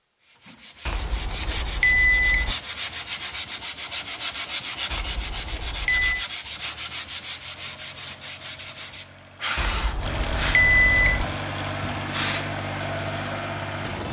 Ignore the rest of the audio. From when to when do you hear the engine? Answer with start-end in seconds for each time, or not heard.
6.5-14.0.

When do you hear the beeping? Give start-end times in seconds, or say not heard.
0.8-2.5, 4.9-6.2, 9.6-11.2.